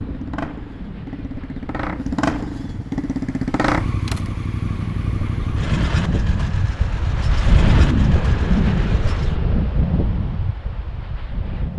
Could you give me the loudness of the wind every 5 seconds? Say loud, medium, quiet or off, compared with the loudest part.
quiet, loud, medium.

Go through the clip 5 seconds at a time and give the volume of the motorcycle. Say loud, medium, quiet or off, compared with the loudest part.
loud, loud, off.